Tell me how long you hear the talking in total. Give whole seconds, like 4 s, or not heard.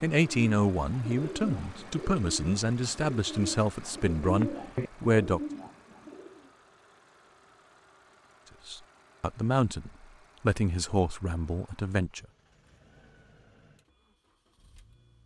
9 s.